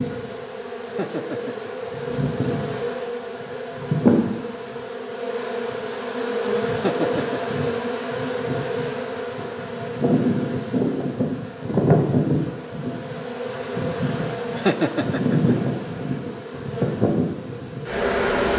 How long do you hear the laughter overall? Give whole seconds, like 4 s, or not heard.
3 s.